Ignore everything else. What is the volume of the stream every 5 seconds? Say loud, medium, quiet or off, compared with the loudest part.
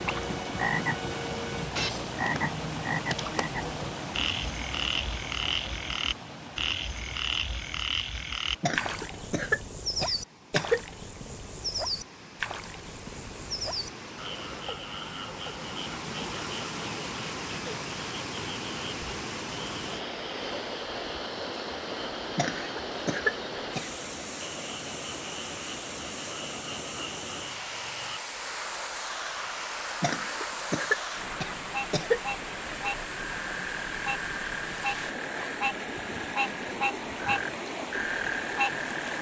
loud, medium, medium, loud, loud, loud, loud, loud.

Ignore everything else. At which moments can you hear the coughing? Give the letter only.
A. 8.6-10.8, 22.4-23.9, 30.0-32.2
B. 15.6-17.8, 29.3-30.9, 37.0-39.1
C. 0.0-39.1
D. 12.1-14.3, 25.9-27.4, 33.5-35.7
A.